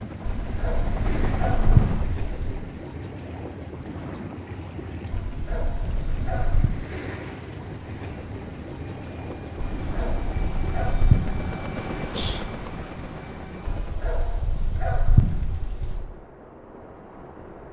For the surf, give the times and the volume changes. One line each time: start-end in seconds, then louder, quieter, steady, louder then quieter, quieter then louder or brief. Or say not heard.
0.0-17.6 quieter.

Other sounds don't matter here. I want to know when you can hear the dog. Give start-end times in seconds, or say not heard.
0.2-2.6, 5.1-6.8, 9.8-11.5, 13.7-16.1.